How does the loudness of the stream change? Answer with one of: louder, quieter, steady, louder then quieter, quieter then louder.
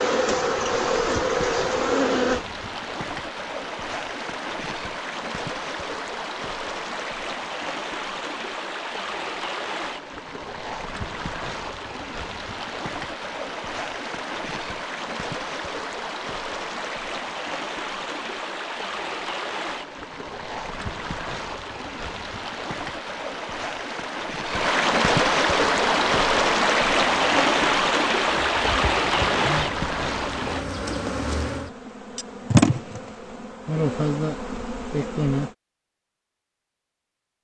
louder.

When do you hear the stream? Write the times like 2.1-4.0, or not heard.
0.1-30.6.